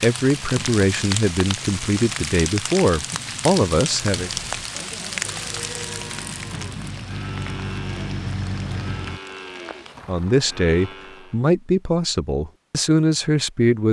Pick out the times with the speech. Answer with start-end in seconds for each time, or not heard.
0.0-4.3, 10.1-13.8.